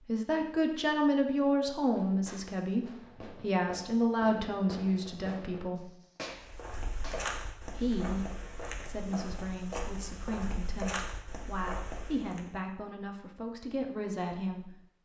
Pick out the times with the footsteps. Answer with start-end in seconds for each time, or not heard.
6.3-12.5.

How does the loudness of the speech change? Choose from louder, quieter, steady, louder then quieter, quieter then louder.
quieter.